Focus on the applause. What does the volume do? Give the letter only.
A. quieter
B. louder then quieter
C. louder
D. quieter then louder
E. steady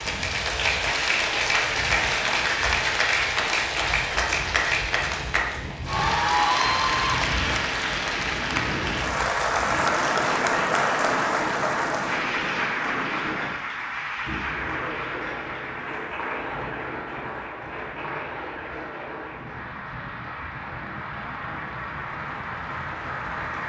A.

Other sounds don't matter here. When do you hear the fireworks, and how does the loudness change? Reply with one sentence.
The fireworks can't be heard in this clip.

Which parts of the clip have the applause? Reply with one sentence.
The applause can be heard from 0.0 to 23.6 s.